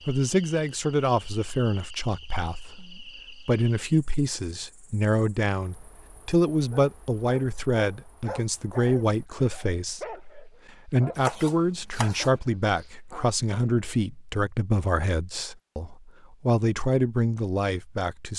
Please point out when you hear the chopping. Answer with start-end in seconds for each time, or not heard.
11.2-12.3.